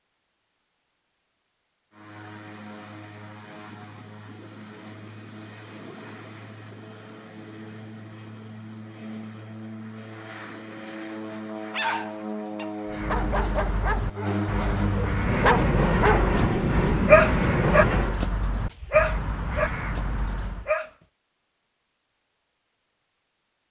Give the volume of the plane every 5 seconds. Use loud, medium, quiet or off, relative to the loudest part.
quiet, quiet, medium, loud, off.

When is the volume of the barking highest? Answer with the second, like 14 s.
17 s.